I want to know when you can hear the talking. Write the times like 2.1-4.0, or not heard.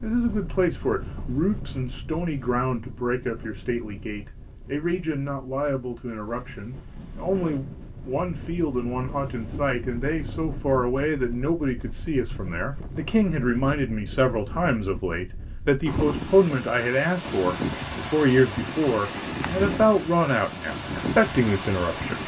0.0-22.2.